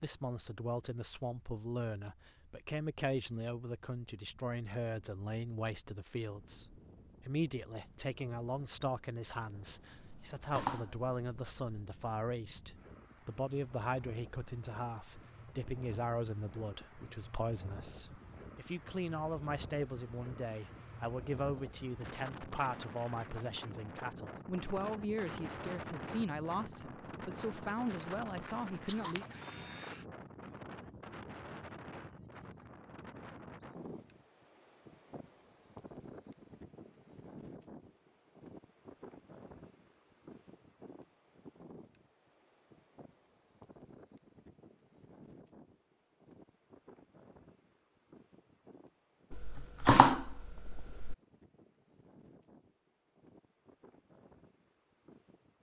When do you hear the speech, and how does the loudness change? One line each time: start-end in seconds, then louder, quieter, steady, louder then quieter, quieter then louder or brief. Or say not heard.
0.0-29.2 steady.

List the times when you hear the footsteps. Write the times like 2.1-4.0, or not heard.
not heard.